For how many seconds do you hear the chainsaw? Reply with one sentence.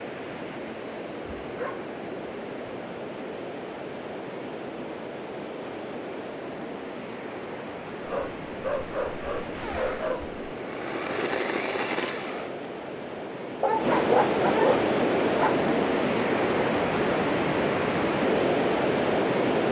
You can hear the chainsaw for 3 seconds altogether.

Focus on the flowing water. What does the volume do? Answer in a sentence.
The volume of the flowing water goes up.